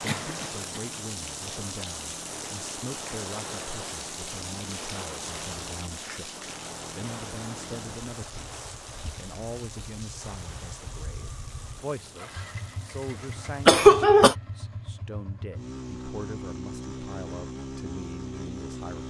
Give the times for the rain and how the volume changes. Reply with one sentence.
You can hear the rain from 0.0 to 13.8 s, getting quieter.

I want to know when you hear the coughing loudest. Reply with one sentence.
The loudest moment of the coughing is at 14 seconds.